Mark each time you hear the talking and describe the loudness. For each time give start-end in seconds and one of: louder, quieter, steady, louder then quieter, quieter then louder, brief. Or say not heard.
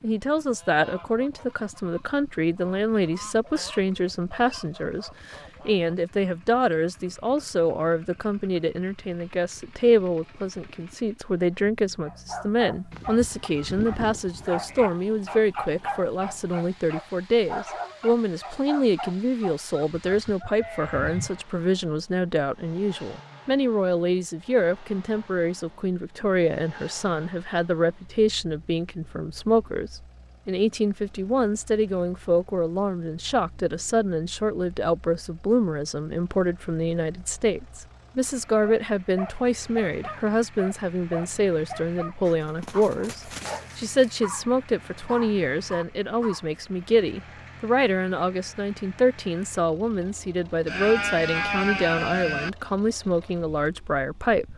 0.0-54.5 steady.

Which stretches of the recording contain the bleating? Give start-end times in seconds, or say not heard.
12.9-14.9, 19.9-21.4, 50.6-52.5.